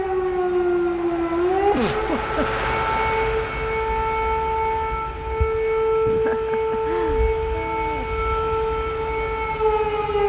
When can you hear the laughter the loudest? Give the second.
2 s.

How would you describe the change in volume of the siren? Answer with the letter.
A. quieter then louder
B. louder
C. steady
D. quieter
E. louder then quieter
C.